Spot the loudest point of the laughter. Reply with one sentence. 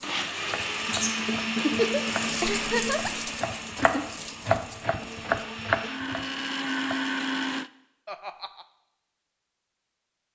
The loudest moment of the laughter is at 3 seconds.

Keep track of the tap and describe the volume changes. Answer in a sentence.
The volume of the tap goes up, then down.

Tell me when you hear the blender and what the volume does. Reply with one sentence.
You can hear the blender from 0.0 to 7.7 s, getting quieter then louder.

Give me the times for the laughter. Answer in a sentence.
The laughter can be heard from 2.4 to 3.3 s and from 8.1 to 8.7 s.